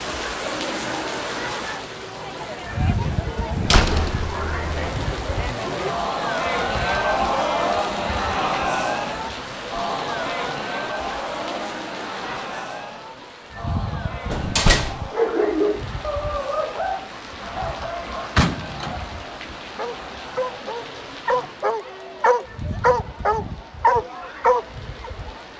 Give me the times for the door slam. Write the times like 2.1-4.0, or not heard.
3.6-4.9, 14.3-15.0, 18.4-19.0.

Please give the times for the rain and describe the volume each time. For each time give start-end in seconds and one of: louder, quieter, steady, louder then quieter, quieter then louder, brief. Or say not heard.
0.0-25.5 quieter.